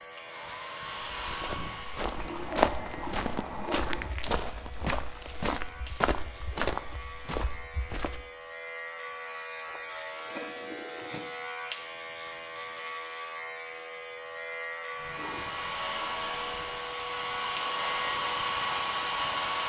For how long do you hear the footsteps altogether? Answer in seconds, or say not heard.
7 s.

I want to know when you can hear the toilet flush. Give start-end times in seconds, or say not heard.
2.1-4.1, 9.7-11.3, 14.9-16.9.